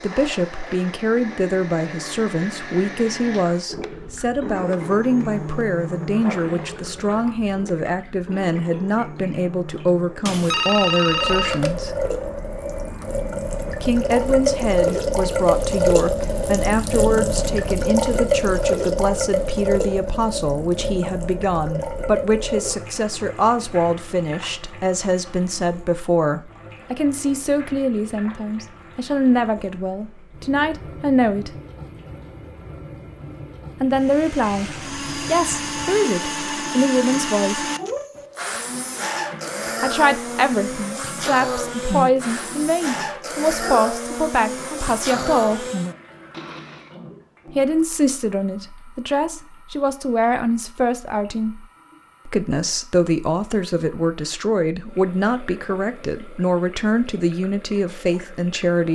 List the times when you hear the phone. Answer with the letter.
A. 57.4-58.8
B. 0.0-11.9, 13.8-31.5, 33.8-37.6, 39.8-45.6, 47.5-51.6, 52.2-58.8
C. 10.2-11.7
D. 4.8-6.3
C.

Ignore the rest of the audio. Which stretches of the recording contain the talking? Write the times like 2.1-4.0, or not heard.
0.0-11.9, 13.8-31.5, 33.8-37.6, 39.8-45.6, 47.5-51.6, 52.2-58.8.